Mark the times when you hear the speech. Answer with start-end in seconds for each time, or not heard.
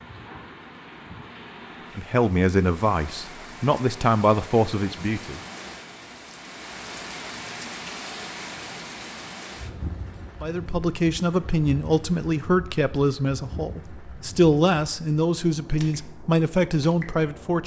1.9-5.4, 10.4-17.6.